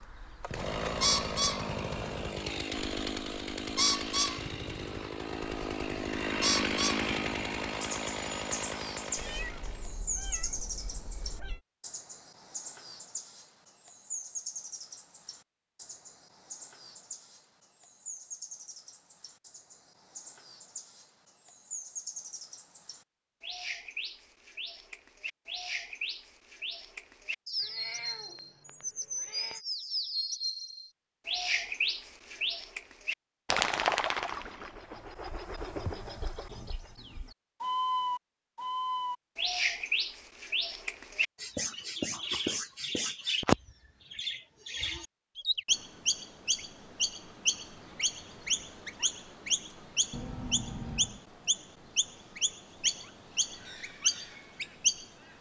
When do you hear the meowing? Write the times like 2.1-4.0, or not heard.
9.2-11.6, 27.6-29.6, 50.1-51.2.